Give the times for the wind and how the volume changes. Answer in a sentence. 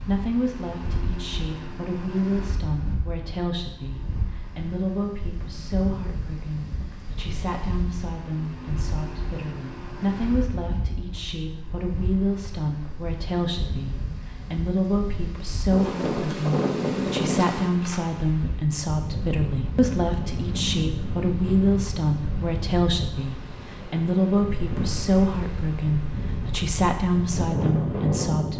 The wind can be heard from 0.0 to 28.5 s, getting louder.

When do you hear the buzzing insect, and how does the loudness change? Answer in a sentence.
The buzzing insect can't be heard in this clip.